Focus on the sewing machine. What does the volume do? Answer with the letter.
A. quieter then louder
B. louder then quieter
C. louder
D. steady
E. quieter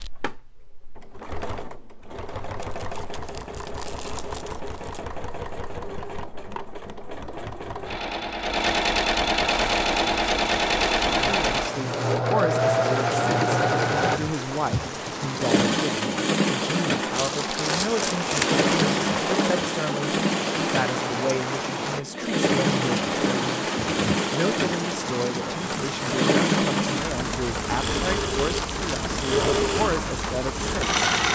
C.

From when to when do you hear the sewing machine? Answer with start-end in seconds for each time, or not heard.
0.0-31.3.